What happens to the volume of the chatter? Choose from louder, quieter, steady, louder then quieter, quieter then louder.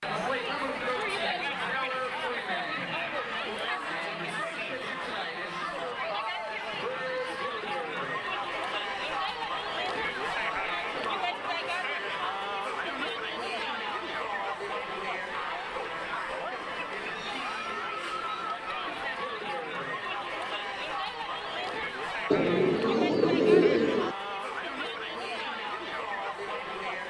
steady.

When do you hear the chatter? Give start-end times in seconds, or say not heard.
0.0-27.0.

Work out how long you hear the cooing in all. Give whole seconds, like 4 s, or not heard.
2 s.